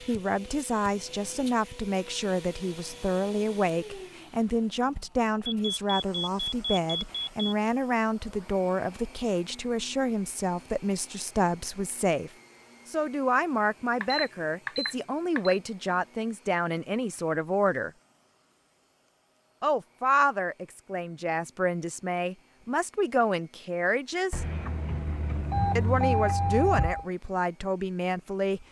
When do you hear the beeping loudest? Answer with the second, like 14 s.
26 s.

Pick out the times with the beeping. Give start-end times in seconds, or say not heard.
5.5-7.5, 14.0-15.6, 24.3-27.1.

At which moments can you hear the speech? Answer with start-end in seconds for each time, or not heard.
0.0-17.9, 19.6-24.4, 25.8-28.6.